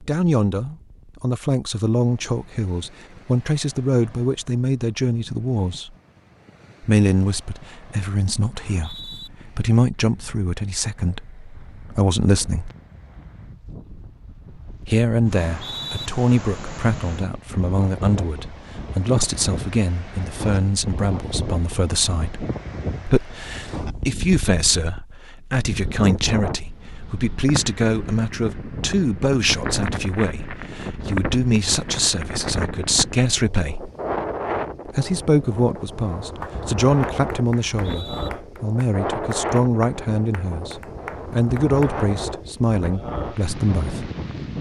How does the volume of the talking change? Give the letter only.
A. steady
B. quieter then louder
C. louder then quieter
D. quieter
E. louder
A.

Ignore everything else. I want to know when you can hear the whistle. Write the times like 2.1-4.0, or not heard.
8.6-9.3, 15.4-16.1, 37.5-38.3.